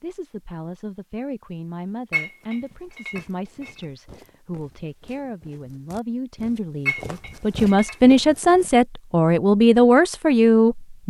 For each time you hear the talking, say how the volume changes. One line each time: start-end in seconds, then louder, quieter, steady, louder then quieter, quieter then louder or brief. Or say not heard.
0.0-11.0 louder.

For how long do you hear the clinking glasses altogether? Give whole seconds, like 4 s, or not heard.
3 s.